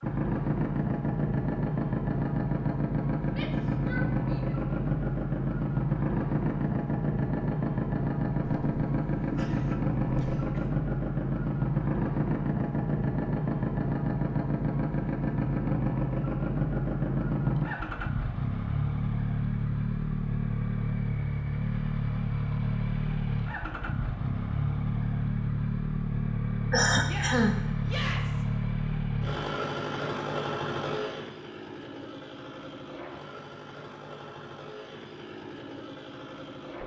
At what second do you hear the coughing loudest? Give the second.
27 s.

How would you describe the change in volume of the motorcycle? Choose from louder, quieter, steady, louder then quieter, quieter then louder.
quieter.